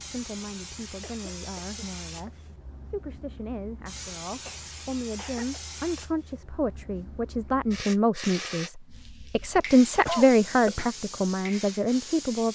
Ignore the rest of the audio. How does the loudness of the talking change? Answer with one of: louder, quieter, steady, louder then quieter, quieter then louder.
louder.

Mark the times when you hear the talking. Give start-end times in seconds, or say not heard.
0.0-12.4.